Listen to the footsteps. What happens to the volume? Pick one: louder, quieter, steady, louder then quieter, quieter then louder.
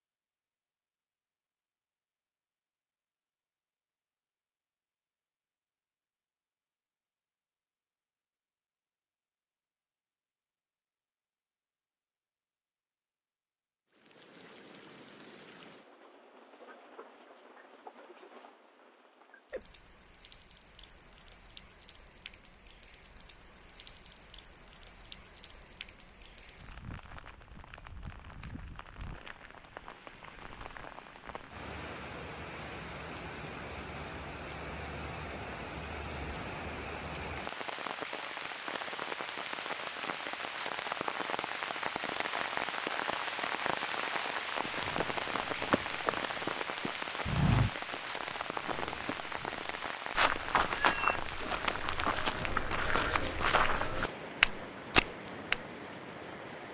louder.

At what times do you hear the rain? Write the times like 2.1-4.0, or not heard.
13.9-56.7.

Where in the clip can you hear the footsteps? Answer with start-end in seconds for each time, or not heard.
44.6-55.6.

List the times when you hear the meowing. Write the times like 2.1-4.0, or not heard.
50.7-51.2.